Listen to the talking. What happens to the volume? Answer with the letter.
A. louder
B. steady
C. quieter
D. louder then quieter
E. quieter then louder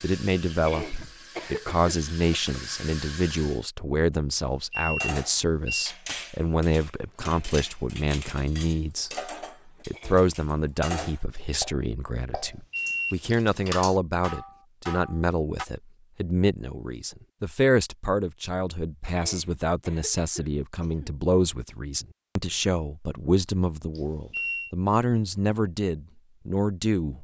B.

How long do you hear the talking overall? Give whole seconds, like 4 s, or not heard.
27 s.